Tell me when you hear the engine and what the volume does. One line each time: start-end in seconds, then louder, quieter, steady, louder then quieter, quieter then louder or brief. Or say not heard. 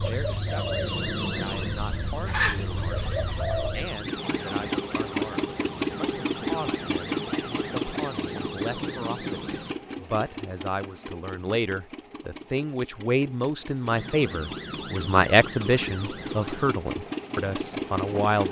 4.0-18.4 quieter then louder.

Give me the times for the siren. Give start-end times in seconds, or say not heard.
0.0-9.8, 13.9-16.8.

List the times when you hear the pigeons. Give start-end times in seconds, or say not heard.
0.0-4.0.